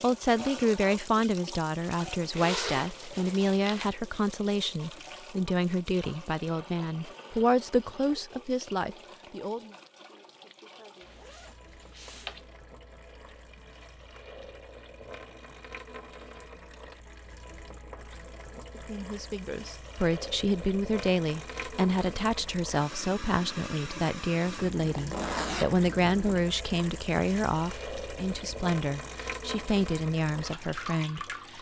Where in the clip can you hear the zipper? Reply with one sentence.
You can hear the zipper from 2.3 to 3.9 s, from 11.1 to 12.4 s and from 24.6 to 26.4 s.